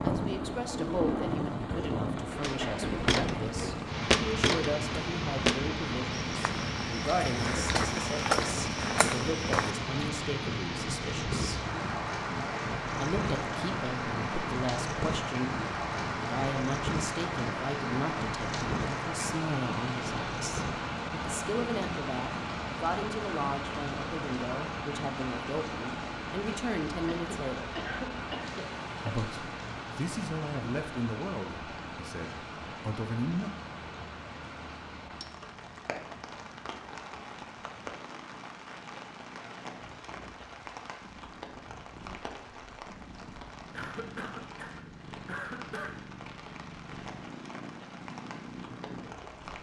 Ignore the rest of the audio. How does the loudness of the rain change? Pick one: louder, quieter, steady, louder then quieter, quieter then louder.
quieter.